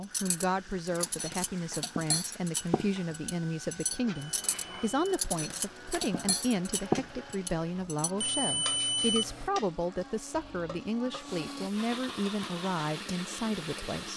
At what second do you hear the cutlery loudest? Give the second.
7 s.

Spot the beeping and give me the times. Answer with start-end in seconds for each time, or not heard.
4.3-5.2, 8.2-9.5.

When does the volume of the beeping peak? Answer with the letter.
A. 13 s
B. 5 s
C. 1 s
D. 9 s
D.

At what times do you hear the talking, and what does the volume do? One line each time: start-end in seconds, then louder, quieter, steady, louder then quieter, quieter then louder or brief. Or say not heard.
0.0-14.1 steady.